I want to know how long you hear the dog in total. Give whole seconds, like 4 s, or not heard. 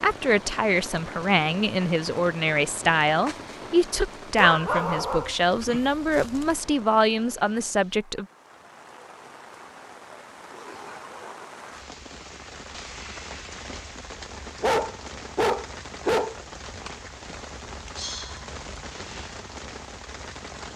4 s.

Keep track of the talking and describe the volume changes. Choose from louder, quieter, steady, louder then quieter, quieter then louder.
steady.